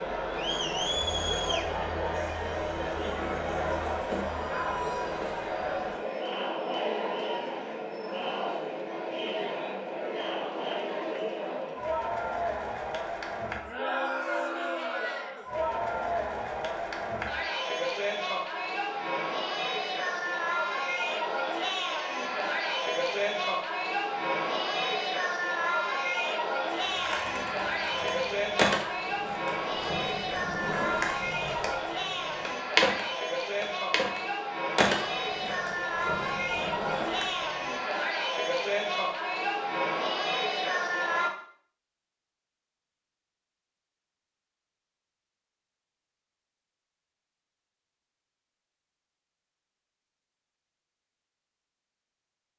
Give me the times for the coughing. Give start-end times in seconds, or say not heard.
not heard.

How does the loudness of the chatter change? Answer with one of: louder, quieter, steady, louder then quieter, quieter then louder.
steady.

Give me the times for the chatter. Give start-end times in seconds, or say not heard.
0.0-41.3.